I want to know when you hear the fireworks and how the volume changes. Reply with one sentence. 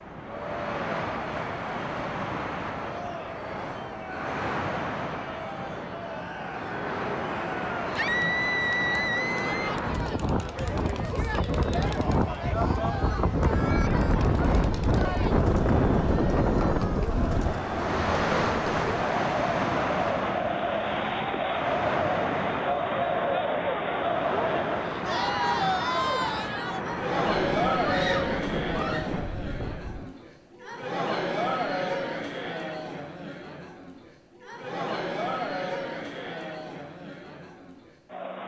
You can't hear the fireworks here.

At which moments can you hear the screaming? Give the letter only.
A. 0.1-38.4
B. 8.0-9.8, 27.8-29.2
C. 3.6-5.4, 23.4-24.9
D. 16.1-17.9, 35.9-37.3
B.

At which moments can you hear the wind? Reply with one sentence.
The wind can be heard from 0.0 to 30.1 s.